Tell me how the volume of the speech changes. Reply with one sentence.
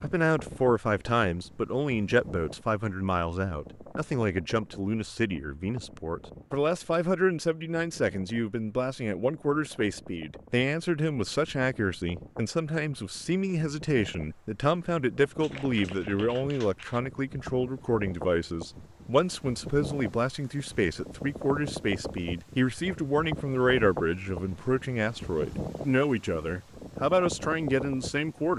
The loudness of the speech stays about the same.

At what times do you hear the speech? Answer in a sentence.
You can hear the speech from 0.0 to 28.5 s.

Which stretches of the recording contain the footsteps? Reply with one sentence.
The footsteps can't be heard in this clip.